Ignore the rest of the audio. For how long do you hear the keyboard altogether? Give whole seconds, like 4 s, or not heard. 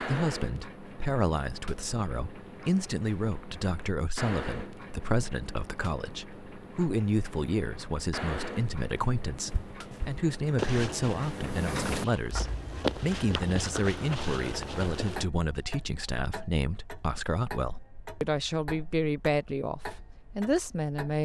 not heard.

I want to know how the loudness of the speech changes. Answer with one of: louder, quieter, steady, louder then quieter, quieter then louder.
steady.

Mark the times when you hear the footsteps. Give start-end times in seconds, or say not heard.
9.4-15.2.